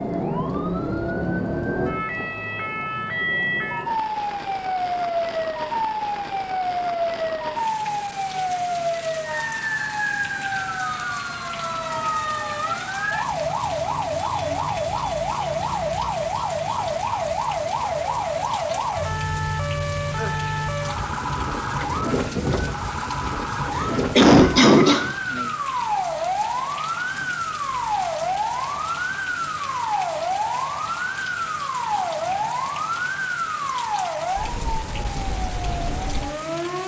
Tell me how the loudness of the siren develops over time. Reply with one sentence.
The loudness of the siren stays about the same.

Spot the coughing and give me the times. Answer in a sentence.
You can hear the coughing from 23.8 to 25.1 s.